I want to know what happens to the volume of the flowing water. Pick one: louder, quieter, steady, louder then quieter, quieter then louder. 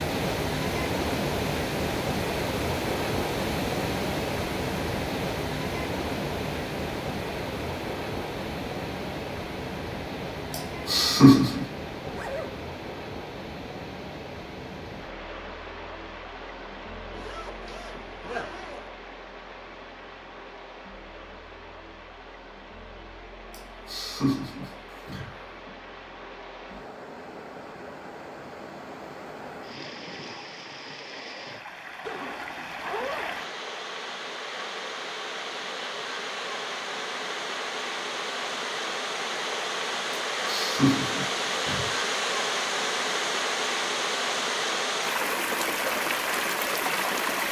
quieter then louder.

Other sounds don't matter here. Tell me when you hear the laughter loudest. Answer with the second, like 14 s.
11 s.